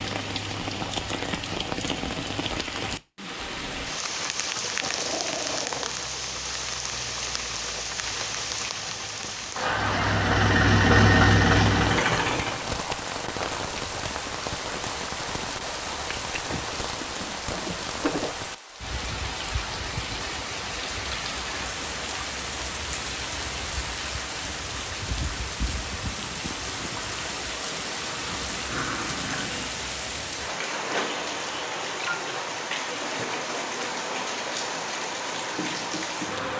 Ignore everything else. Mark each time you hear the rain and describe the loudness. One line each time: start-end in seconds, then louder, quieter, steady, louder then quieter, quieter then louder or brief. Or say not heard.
0.0-36.5 steady.